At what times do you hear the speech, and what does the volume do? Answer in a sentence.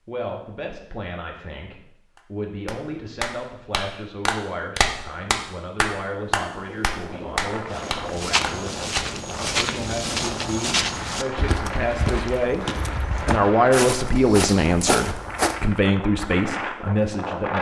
The speech can be heard from 0.1 to 17.5 s, getting louder.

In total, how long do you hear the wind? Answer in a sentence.
You can hear the wind for 11 seconds altogether.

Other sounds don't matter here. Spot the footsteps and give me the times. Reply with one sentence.
The footsteps can be heard from 7.7 to 15.7 s.